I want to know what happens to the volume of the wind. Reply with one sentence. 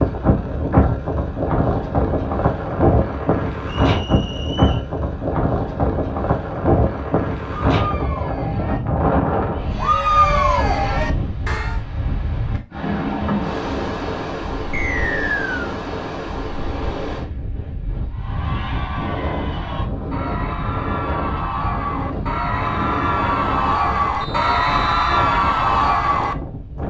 The loudness of the wind goes down.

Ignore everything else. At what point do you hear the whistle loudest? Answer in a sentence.
The loudest moment of the whistle is at 15 seconds.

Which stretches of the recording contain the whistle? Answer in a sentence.
The whistle can be heard from 3.6 to 4.8 s, from 14.7 to 15.8 s and from 24.2 to 25.0 s.